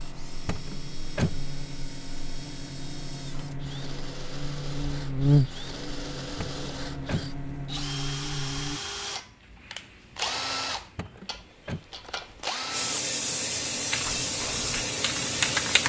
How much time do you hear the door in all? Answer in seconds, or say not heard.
3 s.